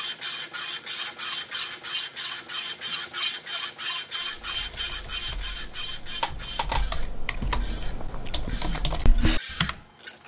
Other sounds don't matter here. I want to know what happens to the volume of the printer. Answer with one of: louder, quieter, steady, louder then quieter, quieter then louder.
quieter.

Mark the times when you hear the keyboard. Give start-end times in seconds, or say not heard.
4.3-9.8.